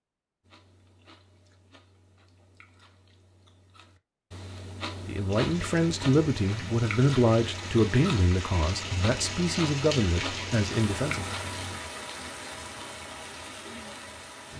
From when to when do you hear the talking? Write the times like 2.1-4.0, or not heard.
5.0-11.3.